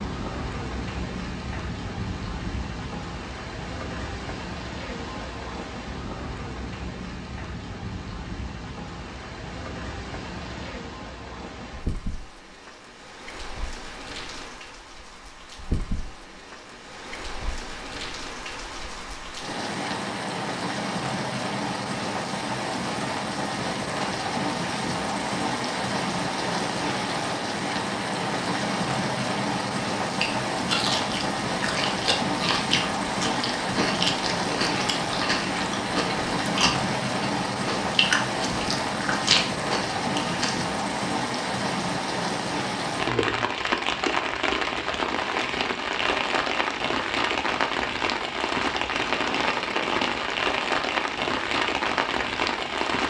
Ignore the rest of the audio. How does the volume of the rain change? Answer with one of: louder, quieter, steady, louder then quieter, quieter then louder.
louder.